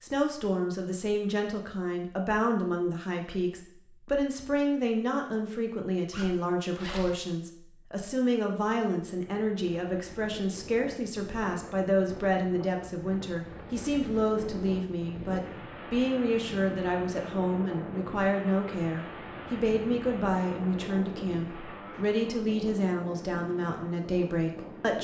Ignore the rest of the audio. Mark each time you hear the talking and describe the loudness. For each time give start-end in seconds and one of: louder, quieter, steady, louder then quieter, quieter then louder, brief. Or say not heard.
0.0-24.9 steady.